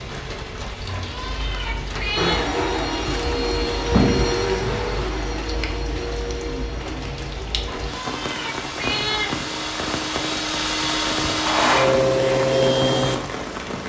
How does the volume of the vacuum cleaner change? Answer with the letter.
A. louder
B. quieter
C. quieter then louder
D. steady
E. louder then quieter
C.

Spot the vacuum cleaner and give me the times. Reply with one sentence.
You can hear the vacuum cleaner from 2.1 to 13.8 s.